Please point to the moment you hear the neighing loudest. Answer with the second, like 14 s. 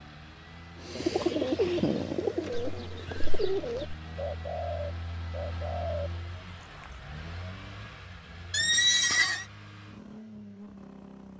9 s.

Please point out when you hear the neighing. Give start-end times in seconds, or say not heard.
2.7-4.0, 8.5-9.4.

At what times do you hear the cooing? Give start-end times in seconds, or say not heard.
0.8-7.0.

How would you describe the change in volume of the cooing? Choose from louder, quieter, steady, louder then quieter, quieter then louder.
quieter.